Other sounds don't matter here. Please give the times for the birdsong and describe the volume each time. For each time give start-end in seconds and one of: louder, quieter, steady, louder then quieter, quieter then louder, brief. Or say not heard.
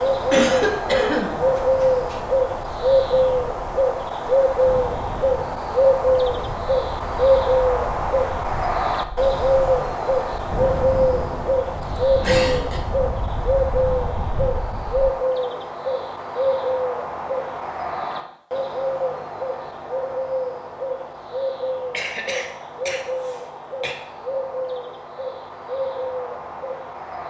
0.0-27.2 quieter.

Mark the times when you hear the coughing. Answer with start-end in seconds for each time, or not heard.
0.3-2.2, 12.2-12.8, 21.9-23.9.